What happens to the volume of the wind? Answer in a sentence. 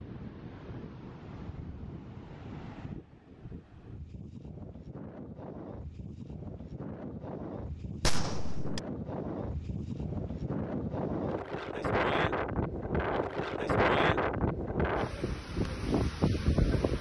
The loudness of the wind goes up.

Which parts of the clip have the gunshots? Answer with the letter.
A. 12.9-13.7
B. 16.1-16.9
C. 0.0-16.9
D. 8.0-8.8
D.